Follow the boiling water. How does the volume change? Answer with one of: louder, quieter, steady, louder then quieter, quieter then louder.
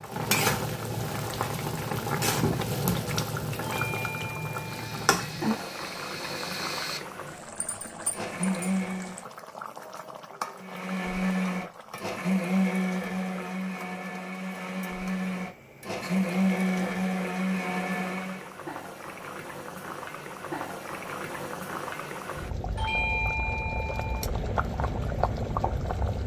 quieter then louder.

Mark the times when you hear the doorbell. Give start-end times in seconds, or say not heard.
3.6-5.0, 22.8-24.2.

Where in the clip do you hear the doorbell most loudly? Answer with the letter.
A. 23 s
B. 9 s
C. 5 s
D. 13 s
A.